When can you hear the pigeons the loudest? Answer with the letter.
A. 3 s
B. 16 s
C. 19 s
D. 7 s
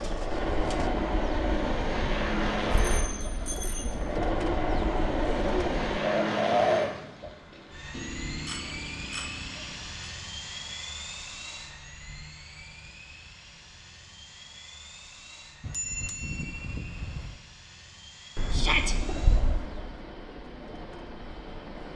D.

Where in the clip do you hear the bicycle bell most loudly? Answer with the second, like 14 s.
16 s.